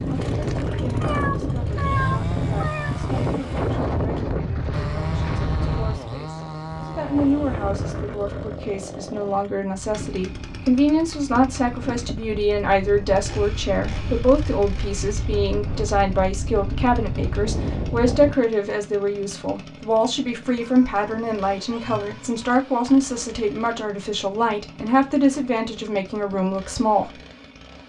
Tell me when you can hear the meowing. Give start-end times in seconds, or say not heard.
1.0-3.0, 20.6-22.6.